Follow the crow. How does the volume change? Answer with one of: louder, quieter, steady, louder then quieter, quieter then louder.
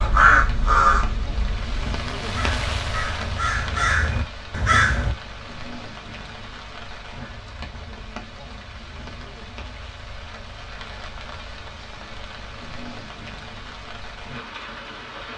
quieter then louder.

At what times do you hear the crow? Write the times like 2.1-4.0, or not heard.
0.0-5.2.